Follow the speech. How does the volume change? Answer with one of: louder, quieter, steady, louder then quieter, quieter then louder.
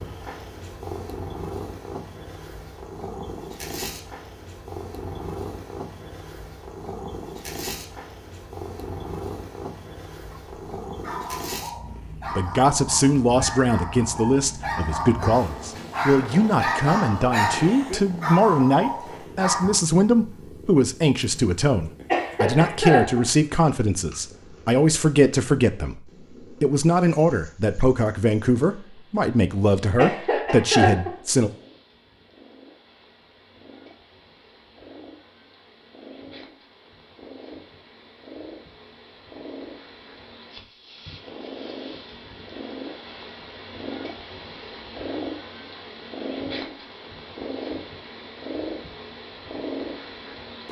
steady.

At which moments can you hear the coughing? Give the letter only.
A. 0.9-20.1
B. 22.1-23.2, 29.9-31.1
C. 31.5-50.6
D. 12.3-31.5
B.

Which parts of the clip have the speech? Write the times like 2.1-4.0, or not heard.
12.3-31.5.